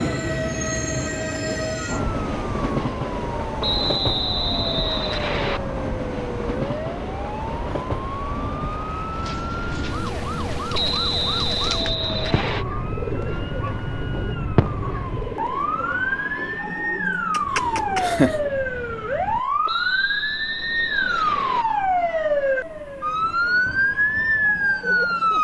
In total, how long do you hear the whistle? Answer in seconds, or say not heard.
6 s.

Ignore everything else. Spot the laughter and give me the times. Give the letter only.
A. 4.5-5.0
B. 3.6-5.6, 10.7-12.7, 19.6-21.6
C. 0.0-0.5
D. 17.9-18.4
D.